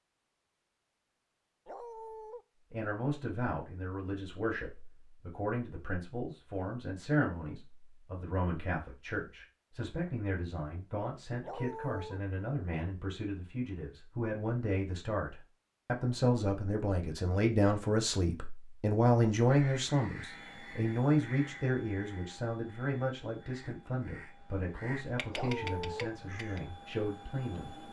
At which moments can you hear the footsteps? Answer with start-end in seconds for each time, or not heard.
not heard.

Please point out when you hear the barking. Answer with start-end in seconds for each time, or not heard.
1.6-2.5, 11.4-12.2, 25.3-26.1.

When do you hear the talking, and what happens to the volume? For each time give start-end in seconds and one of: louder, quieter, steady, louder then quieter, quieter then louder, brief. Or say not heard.
2.7-27.8 louder then quieter.